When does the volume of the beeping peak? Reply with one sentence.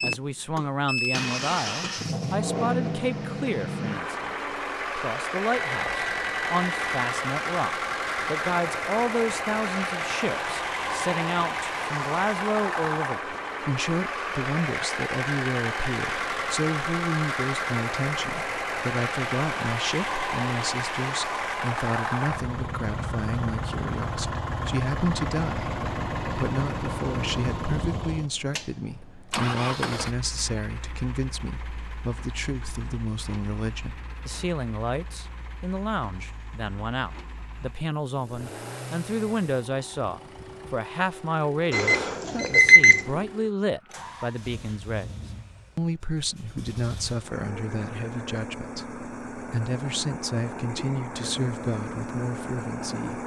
The volume of the beeping peaks at 43 seconds.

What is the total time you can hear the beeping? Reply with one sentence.
You can hear the beeping for 3 seconds altogether.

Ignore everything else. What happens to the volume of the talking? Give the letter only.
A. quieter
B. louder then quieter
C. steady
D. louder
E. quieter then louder
C.